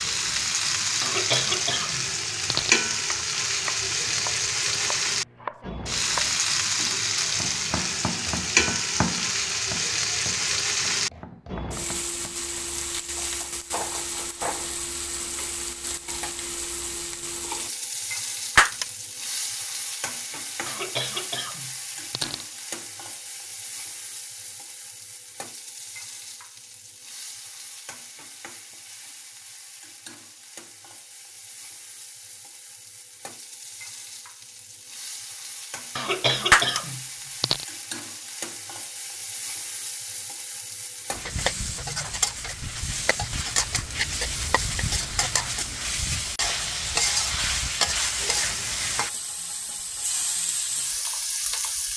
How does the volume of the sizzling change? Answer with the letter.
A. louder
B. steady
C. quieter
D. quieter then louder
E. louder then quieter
D.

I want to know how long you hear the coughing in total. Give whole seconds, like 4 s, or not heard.
5 s.